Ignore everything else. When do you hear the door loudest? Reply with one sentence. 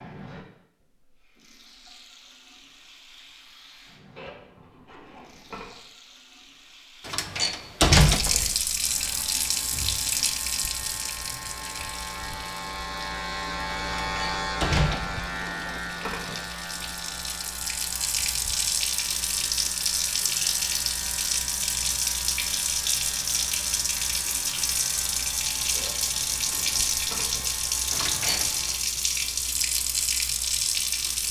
The volume of the door peaks at 8 seconds.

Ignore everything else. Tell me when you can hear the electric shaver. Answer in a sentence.
The electric shaver can be heard from 8.8 to 28.9 s.